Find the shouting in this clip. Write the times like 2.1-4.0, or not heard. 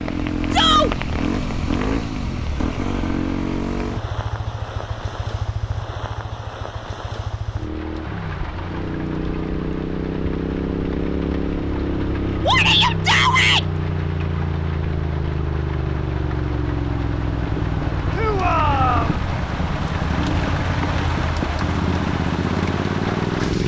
0.5-0.9, 12.4-13.7, 18.1-19.2.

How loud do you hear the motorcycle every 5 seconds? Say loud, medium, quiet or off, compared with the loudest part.
loud, medium, loud, loud, loud.